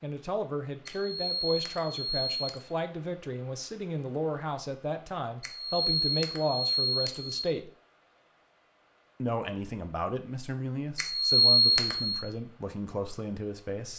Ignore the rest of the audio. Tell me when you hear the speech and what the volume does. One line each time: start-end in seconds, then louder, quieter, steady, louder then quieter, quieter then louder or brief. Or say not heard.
0.0-7.7 steady
9.2-13.9 steady.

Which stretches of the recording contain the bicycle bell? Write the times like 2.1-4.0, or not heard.
0.8-2.8, 5.4-7.5, 10.9-12.2.